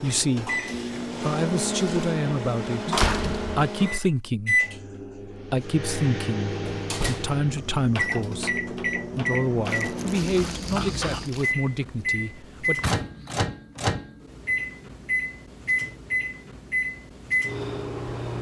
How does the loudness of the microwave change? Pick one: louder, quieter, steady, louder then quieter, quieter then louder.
steady.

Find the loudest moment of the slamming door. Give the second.
3 s.